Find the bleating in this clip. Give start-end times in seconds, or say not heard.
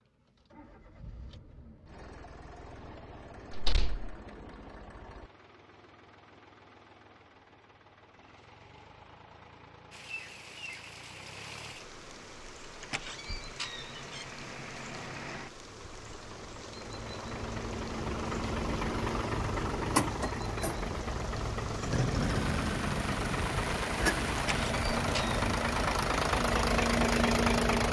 not heard.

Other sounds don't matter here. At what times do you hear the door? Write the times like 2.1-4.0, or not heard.
3.5-4.2, 12.8-14.2, 24.4-25.4.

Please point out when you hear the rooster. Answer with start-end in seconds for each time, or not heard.
not heard.